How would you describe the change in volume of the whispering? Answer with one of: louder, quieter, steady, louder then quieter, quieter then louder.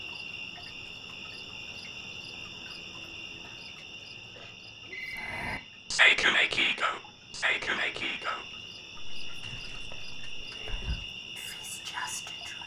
quieter then louder.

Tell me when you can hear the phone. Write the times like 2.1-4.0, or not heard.
4.8-5.7.